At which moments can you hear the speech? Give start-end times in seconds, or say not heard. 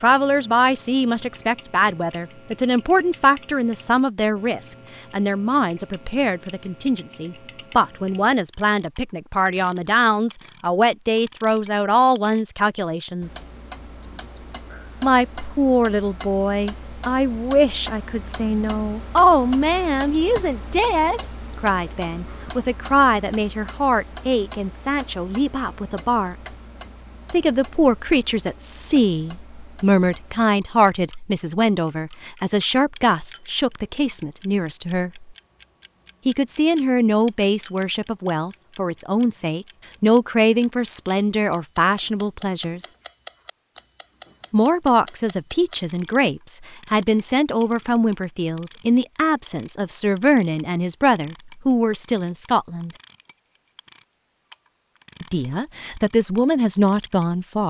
0.0-13.3, 15.0-26.5, 27.3-35.3, 36.2-42.9, 44.5-52.9, 55.2-57.6.